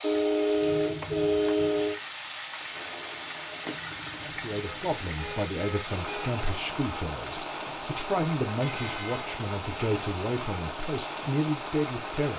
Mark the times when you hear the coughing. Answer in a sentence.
The coughing can't be heard in this clip.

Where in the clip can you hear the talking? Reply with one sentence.
You can hear the talking from 4.2 to 12.3 s.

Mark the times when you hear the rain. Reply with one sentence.
The rain can be heard from 0.0 to 12.3 s.